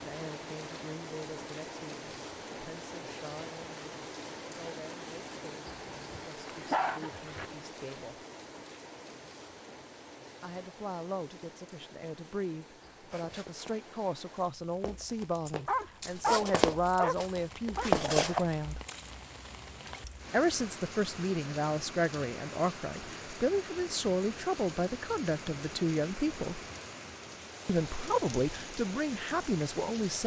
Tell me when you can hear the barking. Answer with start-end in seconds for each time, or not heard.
6.5-7.5, 15.7-17.9.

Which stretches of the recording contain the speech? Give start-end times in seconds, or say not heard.
0.0-8.2, 10.4-18.8, 20.3-26.6, 27.6-30.2.